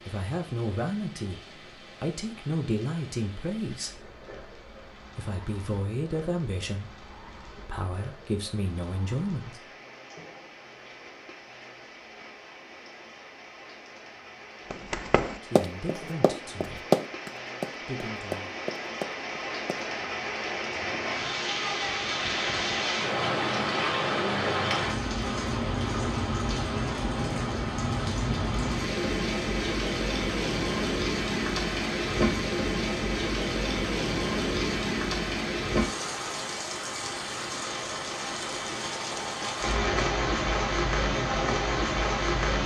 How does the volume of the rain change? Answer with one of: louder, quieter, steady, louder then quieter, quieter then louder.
louder.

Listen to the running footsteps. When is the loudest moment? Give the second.
17 s.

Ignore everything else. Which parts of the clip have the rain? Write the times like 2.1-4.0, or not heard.
0.0-42.6.